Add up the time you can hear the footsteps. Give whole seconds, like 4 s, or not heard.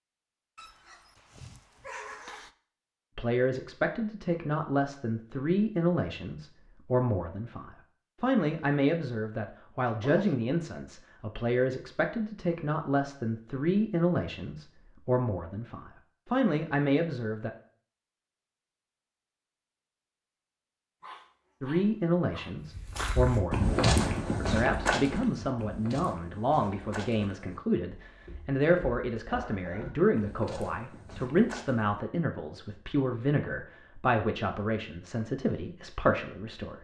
9 s.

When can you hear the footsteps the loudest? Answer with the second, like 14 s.
24 s.